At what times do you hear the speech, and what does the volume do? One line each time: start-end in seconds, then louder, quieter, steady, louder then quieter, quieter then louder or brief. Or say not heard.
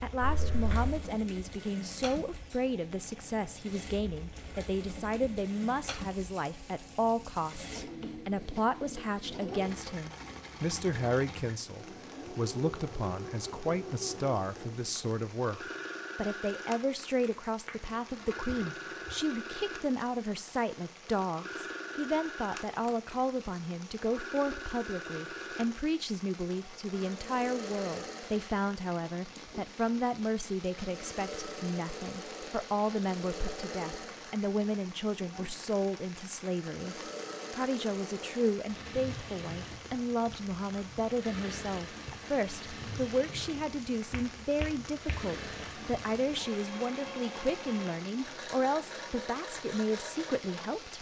0.0-50.9 steady.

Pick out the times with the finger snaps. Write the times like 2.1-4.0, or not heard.
0.2-1.0, 17.6-19.1, 44.0-45.1.